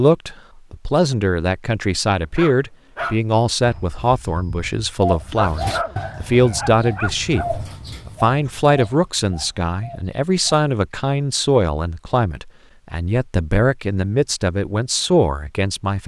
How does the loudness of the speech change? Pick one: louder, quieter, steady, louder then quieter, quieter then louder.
steady.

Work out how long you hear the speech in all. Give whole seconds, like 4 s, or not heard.
16 s.